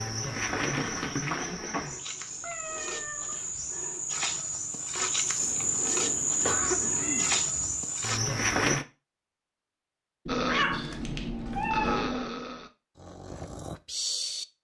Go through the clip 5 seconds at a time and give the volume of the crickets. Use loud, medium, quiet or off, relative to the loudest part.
medium, loud, off.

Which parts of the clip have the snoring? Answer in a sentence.
The snoring can be heard from 10.2 to 14.4 s.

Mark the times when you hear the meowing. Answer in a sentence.
You can hear the meowing from 2.4 to 3.4 s, from 5.3 to 7.4 s and from 10.2 to 12.2 s.